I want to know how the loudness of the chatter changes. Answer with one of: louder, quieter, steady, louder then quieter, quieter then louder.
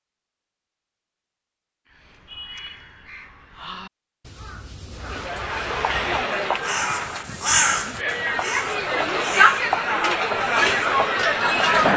quieter then louder.